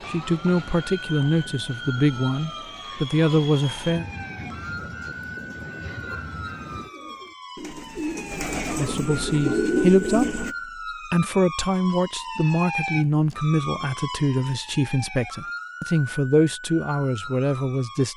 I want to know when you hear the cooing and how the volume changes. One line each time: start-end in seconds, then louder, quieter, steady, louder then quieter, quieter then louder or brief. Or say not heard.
5.1-10.6 louder.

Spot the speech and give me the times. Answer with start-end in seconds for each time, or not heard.
0.1-4.0, 8.8-10.4, 11.1-18.1.